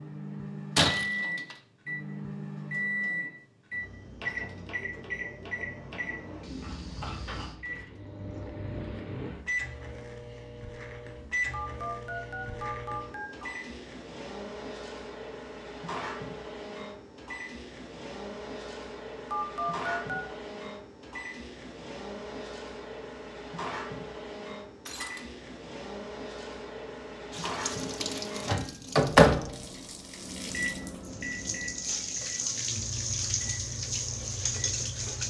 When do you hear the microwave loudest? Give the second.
29 s.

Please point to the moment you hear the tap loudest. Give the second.
33 s.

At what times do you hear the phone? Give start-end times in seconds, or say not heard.
11.5-13.5, 19.3-20.2.